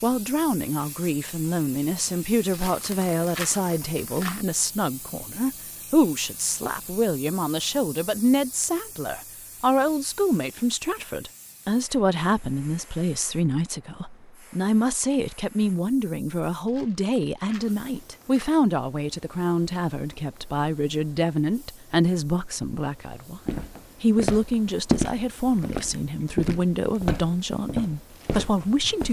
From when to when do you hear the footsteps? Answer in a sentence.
You can hear the footsteps from 23.4 to 29.0 s.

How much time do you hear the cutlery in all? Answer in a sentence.
The cutlery can't be heard in this clip.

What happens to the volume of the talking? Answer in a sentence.
The volume of the talking stays about the same.